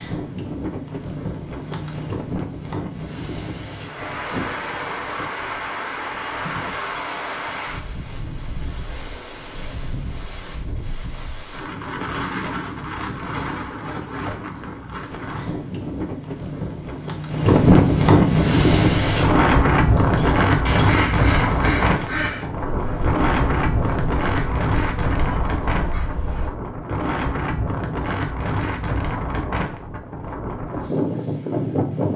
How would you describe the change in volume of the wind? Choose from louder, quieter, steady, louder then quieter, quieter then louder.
louder then quieter.